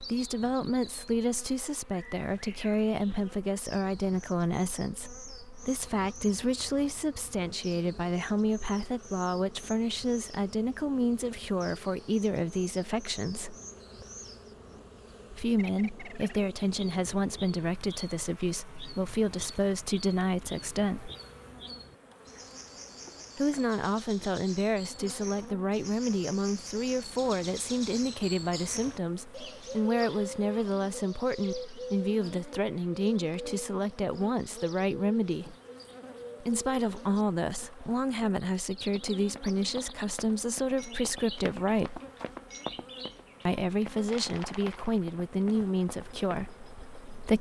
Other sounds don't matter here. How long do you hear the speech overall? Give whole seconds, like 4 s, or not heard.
41 s.